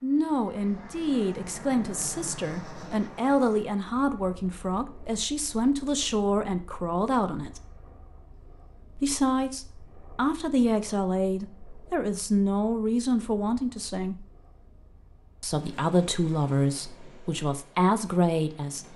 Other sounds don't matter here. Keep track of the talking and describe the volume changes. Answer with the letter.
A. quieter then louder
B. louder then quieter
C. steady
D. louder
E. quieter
C.